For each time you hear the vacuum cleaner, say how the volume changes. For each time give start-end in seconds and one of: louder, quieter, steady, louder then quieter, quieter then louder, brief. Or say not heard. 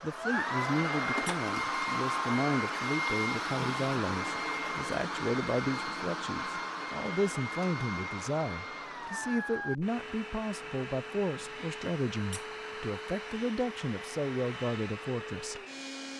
0.0-16.1 quieter.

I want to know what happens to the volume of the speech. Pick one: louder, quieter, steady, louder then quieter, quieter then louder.
steady.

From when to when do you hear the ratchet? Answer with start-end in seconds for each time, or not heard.
not heard.